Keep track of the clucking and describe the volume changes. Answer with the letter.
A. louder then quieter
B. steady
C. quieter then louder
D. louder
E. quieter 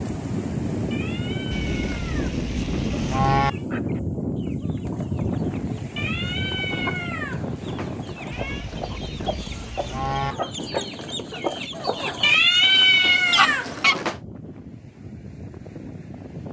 D.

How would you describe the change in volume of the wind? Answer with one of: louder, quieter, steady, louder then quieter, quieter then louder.
quieter.